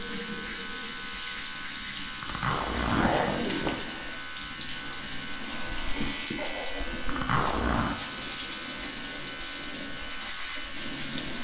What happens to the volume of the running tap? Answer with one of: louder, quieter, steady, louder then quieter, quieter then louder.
steady.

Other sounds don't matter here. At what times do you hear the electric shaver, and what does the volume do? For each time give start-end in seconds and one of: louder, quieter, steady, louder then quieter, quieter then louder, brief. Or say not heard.
0.0-11.3 steady.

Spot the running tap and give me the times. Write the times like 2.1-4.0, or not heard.
0.0-11.3.